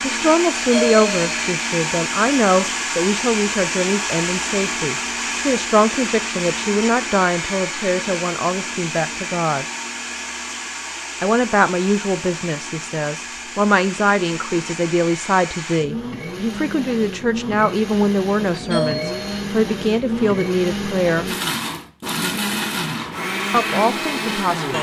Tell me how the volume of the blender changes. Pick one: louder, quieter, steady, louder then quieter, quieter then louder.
quieter then louder.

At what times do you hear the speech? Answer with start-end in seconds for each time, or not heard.
0.0-9.7, 11.2-21.3, 23.5-24.7.